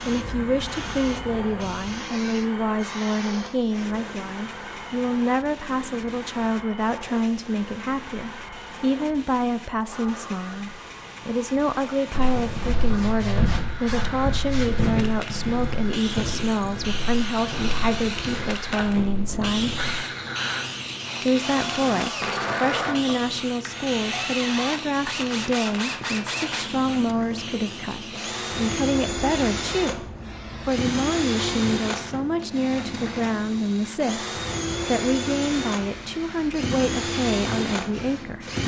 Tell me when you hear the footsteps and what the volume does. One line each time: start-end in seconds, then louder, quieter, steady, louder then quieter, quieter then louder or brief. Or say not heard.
12.1-19.9 quieter.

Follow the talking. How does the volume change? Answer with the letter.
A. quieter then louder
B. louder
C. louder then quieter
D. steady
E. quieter
D.